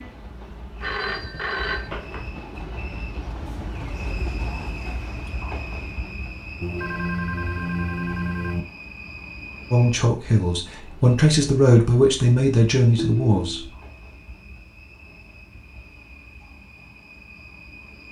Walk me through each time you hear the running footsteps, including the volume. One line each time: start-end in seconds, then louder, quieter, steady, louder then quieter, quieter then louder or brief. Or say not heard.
not heard.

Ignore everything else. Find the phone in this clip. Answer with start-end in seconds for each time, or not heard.
0.8-2.3, 6.6-8.7, 12.9-13.7.